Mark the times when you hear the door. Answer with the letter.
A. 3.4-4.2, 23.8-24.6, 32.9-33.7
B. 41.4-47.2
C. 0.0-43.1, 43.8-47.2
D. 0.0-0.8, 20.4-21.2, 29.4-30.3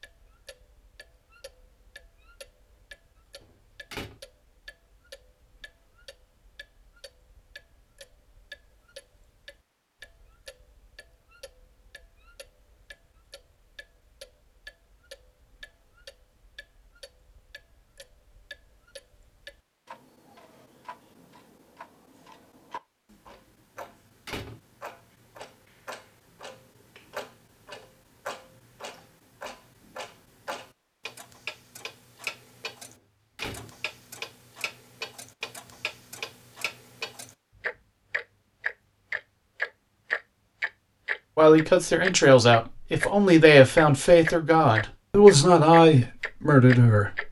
A.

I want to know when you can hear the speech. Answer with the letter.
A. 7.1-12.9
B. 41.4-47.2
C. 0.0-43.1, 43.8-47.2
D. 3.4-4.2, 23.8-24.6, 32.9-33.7
B.